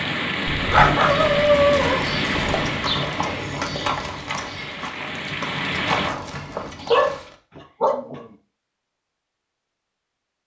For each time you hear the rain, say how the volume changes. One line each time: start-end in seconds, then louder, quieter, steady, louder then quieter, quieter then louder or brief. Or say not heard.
0.0-6.1 quieter then louder.